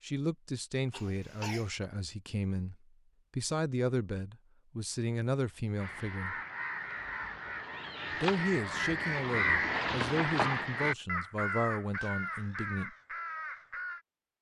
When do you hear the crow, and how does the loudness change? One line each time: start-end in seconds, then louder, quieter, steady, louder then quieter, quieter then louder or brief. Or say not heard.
5.8-14.0 louder then quieter.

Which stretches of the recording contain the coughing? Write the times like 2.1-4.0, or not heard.
0.9-1.7.